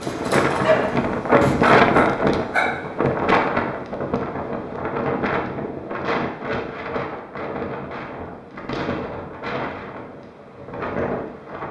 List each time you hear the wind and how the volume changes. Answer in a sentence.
The wind can be heard from 0.0 to 11.6 s, getting quieter.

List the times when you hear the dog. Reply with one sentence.
You can hear the dog from 0.0 to 2.7 s.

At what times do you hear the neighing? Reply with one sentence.
You can't hear the neighing here.